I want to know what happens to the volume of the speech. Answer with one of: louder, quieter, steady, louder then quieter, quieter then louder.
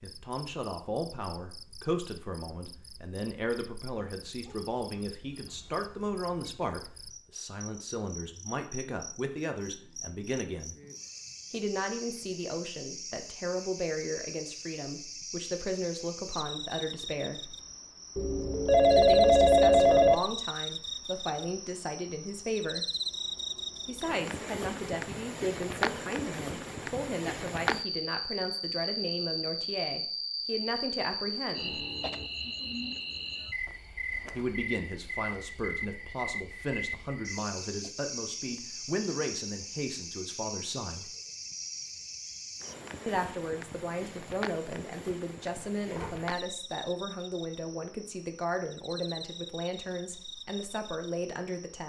steady.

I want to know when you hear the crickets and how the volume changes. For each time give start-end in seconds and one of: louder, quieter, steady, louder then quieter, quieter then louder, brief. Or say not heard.
0.0-51.8 louder then quieter.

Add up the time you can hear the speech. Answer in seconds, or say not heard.
44 s.